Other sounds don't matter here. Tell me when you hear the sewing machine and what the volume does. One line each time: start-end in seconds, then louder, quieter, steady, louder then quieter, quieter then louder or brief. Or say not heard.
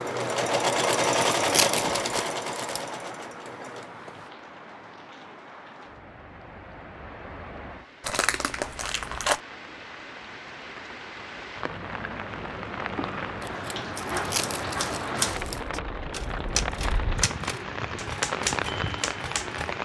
0.0-4.3 quieter.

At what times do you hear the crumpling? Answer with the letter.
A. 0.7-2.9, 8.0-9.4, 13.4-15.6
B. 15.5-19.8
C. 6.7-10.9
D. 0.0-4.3
A.